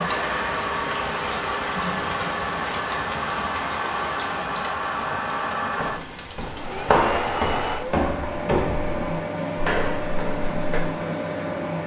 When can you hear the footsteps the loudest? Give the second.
7 s.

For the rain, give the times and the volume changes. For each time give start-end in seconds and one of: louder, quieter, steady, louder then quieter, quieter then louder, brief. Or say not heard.
0.0-11.8 quieter.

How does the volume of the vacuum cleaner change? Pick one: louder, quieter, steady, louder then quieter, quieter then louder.
steady.